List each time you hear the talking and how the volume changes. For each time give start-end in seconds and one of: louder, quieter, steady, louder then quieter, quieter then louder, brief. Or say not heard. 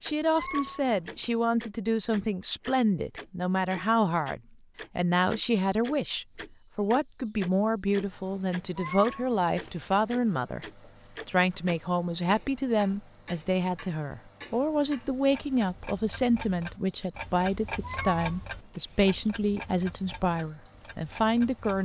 0.0-21.8 steady.